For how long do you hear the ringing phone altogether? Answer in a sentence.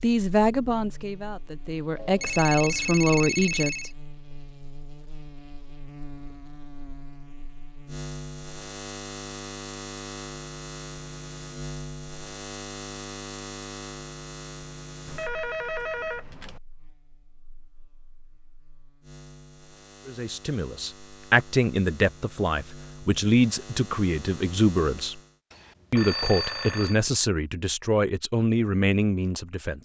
The ringing phone can be heard for 5 seconds in total.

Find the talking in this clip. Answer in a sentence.
You can hear the talking from 0.0 to 3.9 s, from 20.1 to 25.2 s and from 25.9 to 29.8 s.